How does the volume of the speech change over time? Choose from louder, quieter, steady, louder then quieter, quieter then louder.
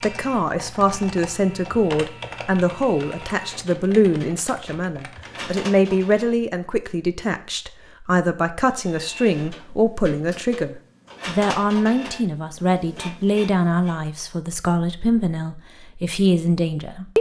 steady.